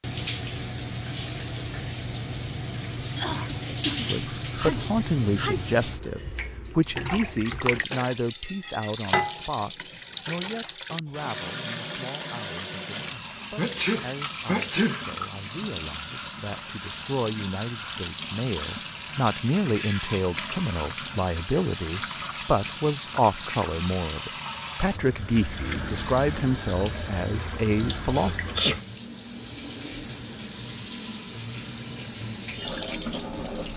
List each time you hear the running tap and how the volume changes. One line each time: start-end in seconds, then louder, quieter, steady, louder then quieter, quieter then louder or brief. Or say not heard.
0.0-33.7 steady.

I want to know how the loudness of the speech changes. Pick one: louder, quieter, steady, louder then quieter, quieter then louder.
quieter then louder.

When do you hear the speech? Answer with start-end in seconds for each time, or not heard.
4.0-28.4.